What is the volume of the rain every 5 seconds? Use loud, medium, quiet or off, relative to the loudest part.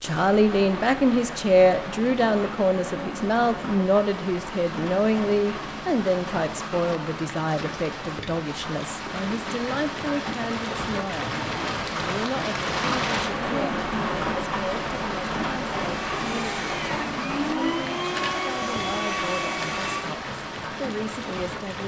medium, medium, loud, loud, medium.